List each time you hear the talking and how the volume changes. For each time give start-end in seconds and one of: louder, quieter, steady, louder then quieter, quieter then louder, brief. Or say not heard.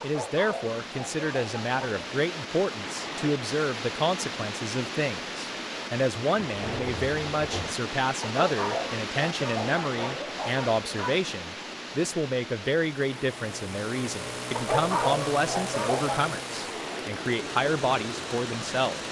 0.0-19.0 steady.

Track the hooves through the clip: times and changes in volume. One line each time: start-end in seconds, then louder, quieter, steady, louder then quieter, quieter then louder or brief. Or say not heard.
not heard.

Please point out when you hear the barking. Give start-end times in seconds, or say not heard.
0.0-2.0, 8.2-11.2, 14.6-16.2.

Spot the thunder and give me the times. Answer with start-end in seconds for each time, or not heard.
6.4-7.8.